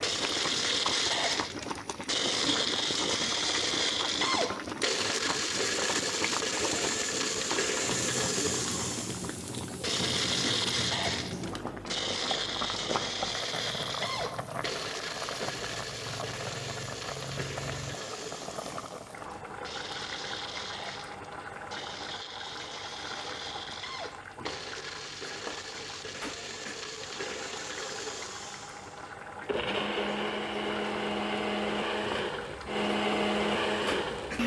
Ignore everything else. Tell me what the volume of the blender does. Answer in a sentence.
The volume of the blender goes down, then up.